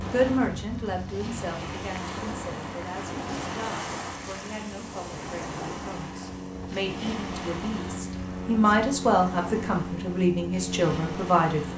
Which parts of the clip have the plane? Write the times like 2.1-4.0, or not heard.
0.0-11.7.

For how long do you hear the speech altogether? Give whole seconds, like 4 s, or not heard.
12 s.